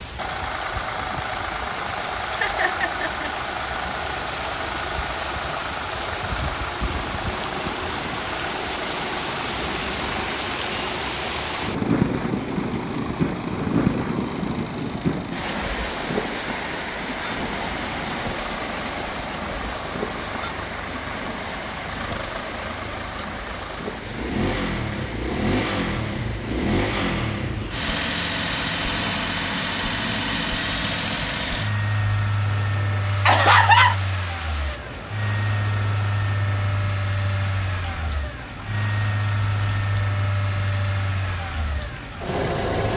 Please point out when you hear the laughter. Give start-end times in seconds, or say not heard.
2.3-3.2, 33.2-34.0.